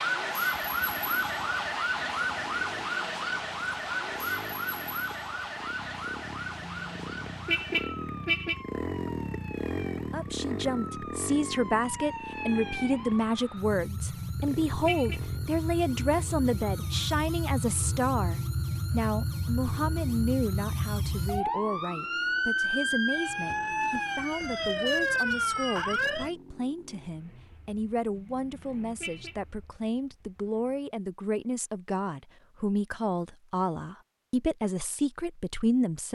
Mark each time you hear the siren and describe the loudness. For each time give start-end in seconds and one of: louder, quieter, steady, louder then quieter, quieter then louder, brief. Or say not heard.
0.0-26.3 quieter then louder.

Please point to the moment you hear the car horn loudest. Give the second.
8 s.